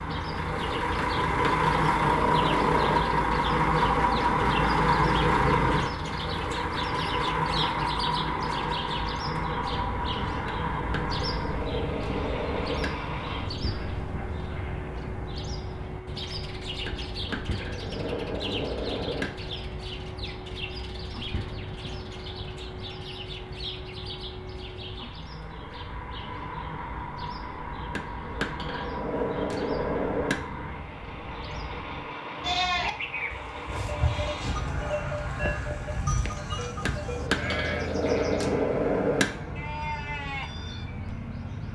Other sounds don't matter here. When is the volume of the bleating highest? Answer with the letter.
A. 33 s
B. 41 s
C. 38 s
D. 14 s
A.